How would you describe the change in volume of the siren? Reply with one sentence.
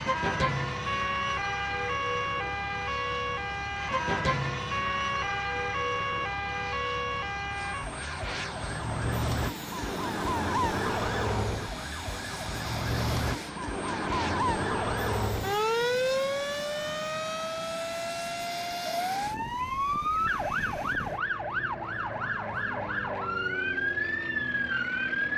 The loudness of the siren stays about the same.